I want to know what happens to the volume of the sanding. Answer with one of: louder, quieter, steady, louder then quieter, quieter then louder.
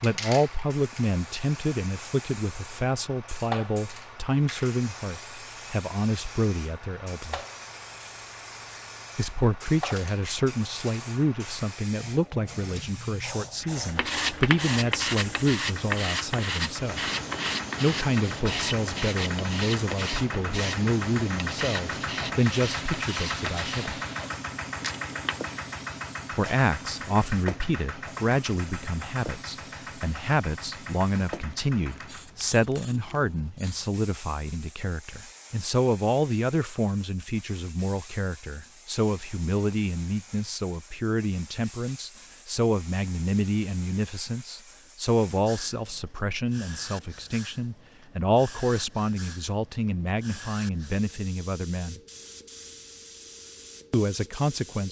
quieter.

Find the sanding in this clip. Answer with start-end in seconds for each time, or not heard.
13.9-25.6.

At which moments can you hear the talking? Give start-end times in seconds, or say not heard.
0.0-7.4, 9.2-17.1, 17.8-23.9, 26.3-52.0, 53.9-54.8.